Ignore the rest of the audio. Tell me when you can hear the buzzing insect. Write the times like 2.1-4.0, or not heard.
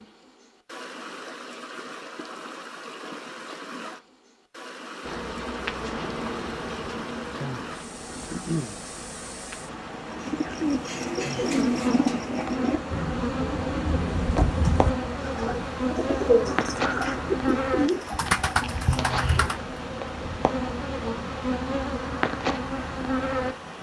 5.0-23.6.